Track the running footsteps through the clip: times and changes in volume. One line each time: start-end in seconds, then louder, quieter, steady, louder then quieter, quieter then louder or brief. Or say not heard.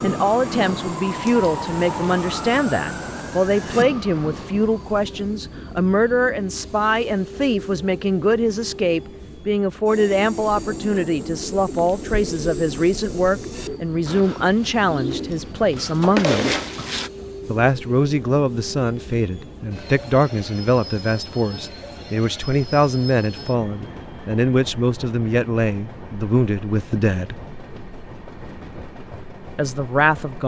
not heard.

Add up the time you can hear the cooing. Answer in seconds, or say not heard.
7 s.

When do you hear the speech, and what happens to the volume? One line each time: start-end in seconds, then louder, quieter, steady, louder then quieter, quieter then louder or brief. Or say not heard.
0.0-16.6 steady
17.4-27.4 steady
29.6-30.4 brief.